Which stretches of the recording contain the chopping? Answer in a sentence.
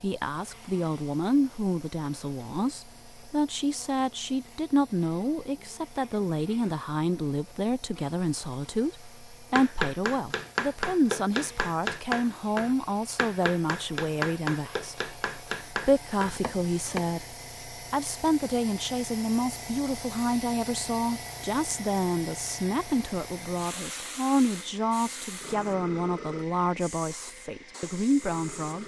The chopping can be heard from 9.6 to 17.1 s.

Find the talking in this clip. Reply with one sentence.
The talking can be heard from 0.0 to 28.8 s.